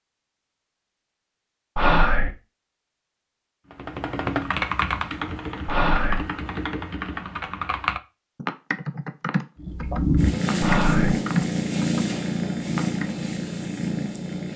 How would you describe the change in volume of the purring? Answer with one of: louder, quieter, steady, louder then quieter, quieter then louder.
quieter.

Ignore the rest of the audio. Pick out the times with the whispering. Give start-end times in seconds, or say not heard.
1.8-2.4, 5.7-6.2, 10.6-11.2.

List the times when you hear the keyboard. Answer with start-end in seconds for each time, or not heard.
3.7-13.2.